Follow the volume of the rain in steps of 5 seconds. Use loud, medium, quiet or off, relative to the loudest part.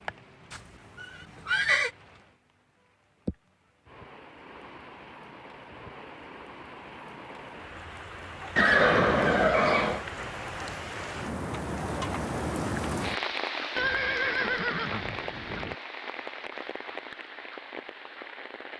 quiet, medium, loud, medium.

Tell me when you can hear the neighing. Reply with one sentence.
The neighing can be heard from 0.5 to 1.9 s, from 8.6 to 10.1 s and from 13.8 to 15.8 s.